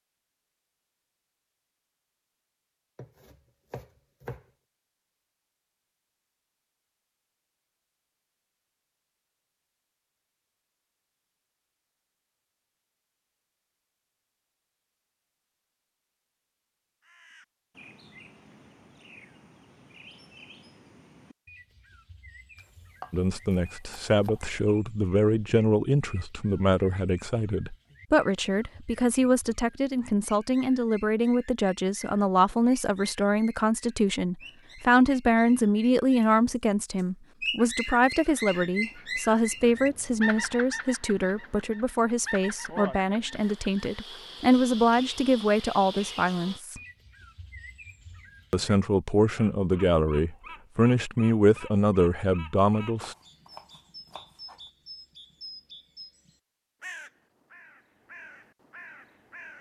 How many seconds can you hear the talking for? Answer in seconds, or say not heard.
28 s.